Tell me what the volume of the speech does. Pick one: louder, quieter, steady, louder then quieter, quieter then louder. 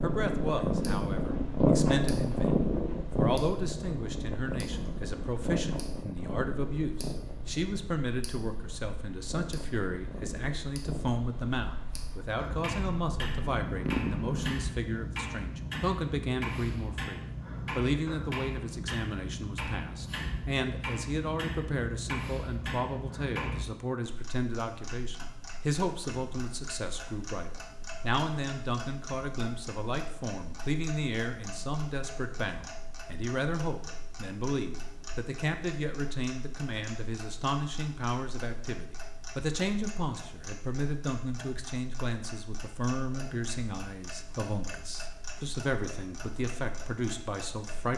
steady.